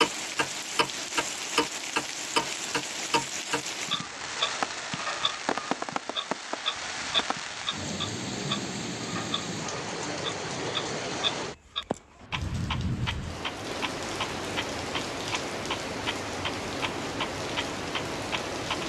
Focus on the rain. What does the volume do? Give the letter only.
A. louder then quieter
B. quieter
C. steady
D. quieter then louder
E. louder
C.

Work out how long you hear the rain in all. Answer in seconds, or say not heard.
19 s.